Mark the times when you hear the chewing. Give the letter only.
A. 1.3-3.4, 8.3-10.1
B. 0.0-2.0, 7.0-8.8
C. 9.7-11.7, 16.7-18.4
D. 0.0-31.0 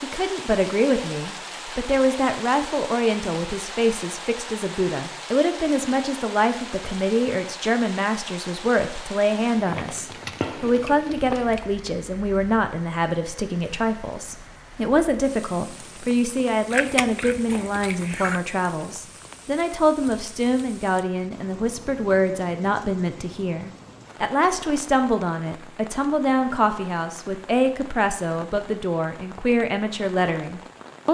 C.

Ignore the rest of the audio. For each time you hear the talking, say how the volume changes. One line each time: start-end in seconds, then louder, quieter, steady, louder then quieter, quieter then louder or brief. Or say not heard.
0.0-31.0 steady.